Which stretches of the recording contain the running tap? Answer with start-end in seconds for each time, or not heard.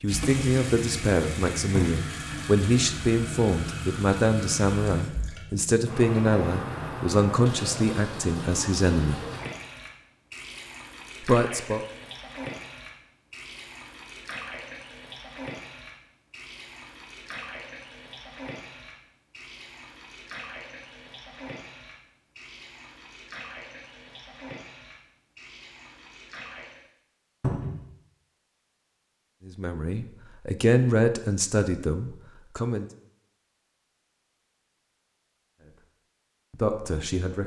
0.1-26.9.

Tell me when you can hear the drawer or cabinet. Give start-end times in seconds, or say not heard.
1.7-2.1, 27.4-27.8.